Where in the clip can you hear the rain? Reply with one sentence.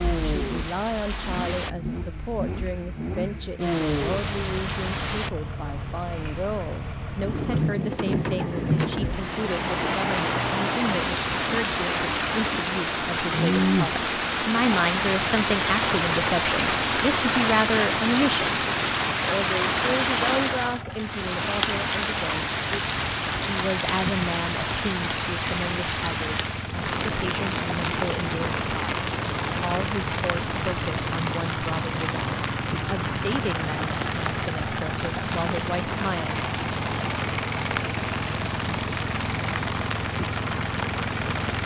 The rain can be heard from 0.0 to 41.6 s.